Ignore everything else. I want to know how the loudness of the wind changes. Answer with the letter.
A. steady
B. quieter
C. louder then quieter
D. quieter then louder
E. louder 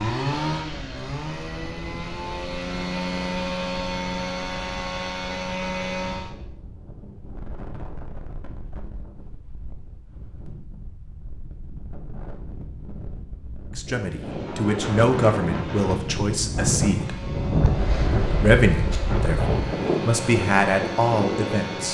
E.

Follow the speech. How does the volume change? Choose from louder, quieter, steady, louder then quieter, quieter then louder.
steady.